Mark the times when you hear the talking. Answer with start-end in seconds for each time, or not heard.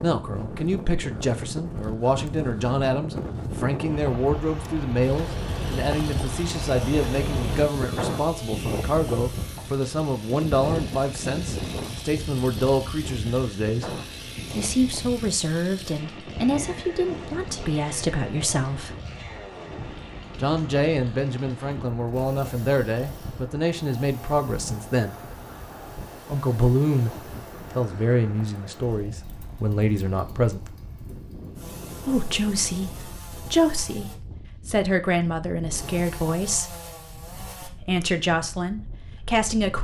0.0-13.9, 14.6-18.9, 20.4-25.1, 26.2-30.7, 32.0-36.8, 37.6-39.7.